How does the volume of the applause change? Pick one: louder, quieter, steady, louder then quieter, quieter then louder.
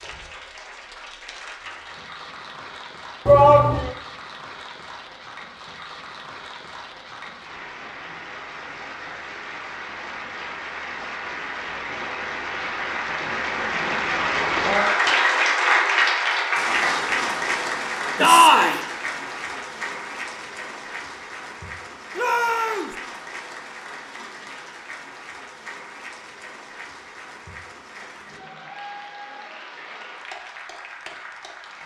louder then quieter.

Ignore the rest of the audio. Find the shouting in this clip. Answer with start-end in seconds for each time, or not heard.
3.2-3.9, 18.1-18.8, 22.1-22.9.